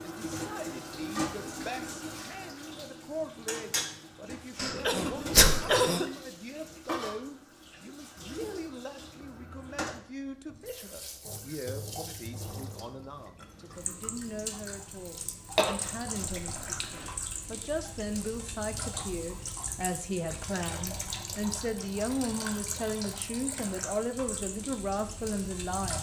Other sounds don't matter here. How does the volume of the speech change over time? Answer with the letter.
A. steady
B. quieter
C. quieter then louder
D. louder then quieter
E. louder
E.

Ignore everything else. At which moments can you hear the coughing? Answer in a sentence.
The coughing can be heard from 4.5 to 6.0 s and from 15.6 to 17.1 s.